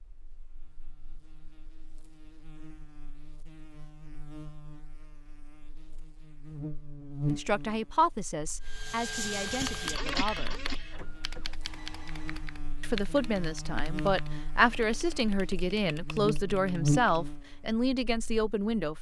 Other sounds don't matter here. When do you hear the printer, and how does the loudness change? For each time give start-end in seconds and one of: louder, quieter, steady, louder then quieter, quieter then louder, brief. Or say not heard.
8.7-12.7 quieter.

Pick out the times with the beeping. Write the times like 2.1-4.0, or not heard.
not heard.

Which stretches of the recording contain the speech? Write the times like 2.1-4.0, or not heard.
7.3-10.6, 12.8-18.9.